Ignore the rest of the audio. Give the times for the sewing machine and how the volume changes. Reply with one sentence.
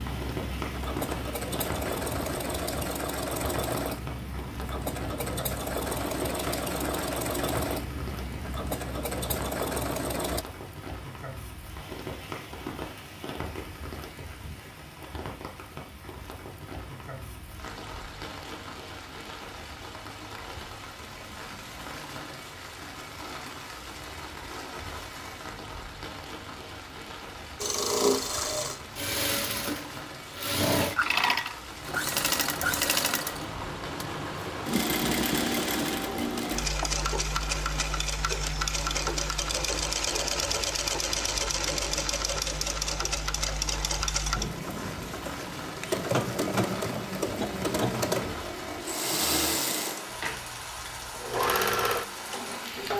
You can hear the sewing machine from 0.0 to 10.4 s, at a steady volume; and from 27.6 to 52.9 s, at a steady volume.